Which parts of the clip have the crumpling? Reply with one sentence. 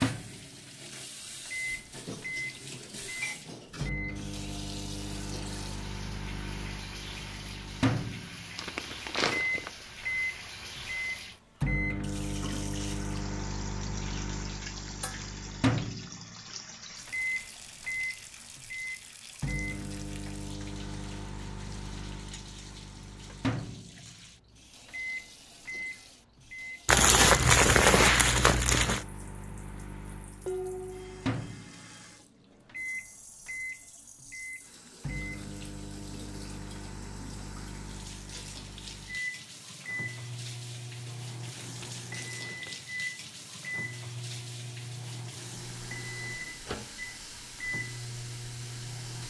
The crumpling can be heard from 8.6 to 9.7 s, from 26.9 to 29.1 s and from 41.0 to 42.8 s.